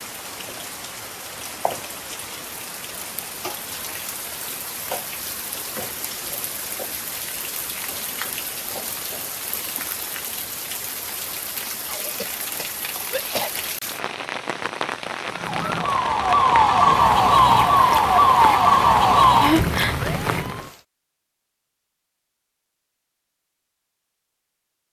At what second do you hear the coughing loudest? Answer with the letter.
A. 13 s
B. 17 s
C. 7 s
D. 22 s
A.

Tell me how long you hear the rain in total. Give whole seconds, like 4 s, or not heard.
21 s.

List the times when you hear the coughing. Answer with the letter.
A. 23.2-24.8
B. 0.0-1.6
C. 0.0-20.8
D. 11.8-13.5
D.